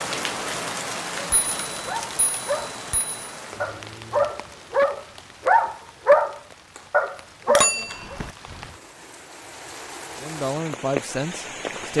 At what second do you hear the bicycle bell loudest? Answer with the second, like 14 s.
8 s.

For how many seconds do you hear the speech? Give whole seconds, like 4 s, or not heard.
2 s.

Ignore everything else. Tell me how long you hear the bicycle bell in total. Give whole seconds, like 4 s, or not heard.
3 s.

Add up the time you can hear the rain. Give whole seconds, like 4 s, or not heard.
12 s.